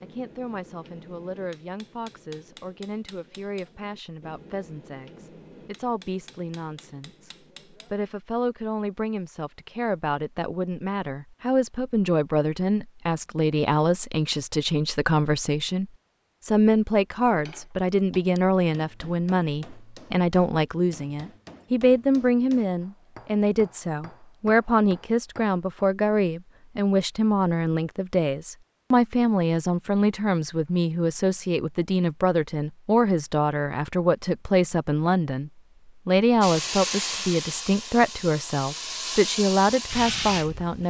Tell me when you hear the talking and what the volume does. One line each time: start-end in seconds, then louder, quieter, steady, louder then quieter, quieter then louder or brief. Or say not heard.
0.0-40.8 louder.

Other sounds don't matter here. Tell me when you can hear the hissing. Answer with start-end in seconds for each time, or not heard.
36.4-40.8.